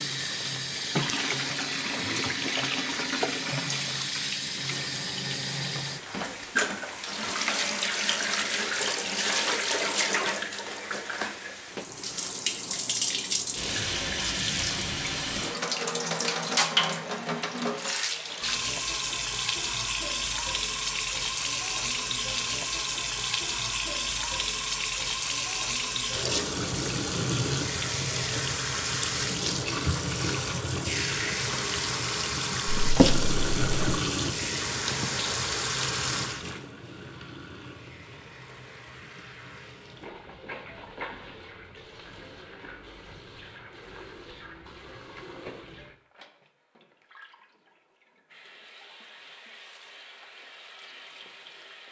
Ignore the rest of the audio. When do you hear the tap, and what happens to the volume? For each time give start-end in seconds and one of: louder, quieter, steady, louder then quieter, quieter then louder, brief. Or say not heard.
0.0-51.8 quieter.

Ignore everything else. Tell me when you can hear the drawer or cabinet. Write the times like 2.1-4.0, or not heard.
32.8-34.0.